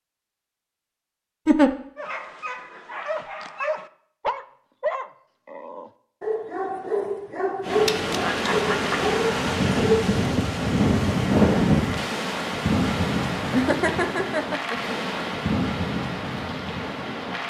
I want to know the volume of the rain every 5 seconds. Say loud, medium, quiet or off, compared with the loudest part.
off, loud, loud, medium.